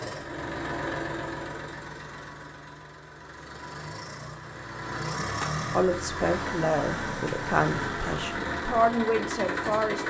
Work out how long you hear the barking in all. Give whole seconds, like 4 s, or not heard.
not heard.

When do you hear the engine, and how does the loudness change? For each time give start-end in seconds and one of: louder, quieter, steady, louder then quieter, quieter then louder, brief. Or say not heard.
0.0-10.0 quieter then louder.